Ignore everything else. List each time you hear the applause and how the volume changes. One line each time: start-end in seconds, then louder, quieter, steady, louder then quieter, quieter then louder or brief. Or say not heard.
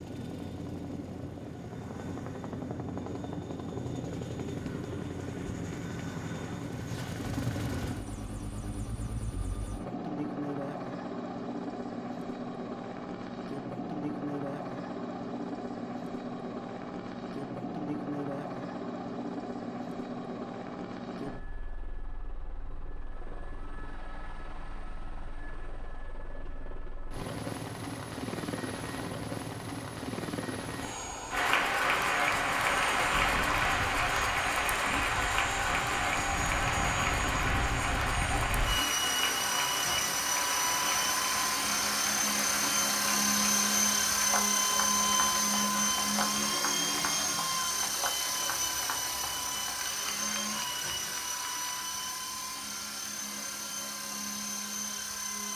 31.3-51.9 quieter.